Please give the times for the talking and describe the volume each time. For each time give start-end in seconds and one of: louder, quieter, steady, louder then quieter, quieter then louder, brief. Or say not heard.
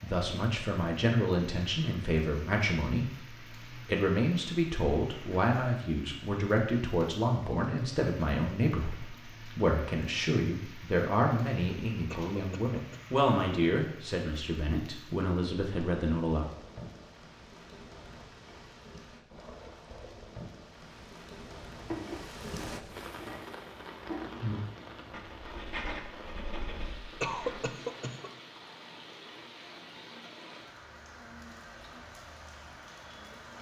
0.0-16.4 steady.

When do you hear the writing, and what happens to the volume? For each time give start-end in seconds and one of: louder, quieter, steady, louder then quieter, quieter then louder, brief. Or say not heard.
21.8-27.6 louder then quieter.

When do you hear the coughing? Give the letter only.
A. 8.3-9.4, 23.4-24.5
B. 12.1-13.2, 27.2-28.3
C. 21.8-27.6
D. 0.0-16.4
B.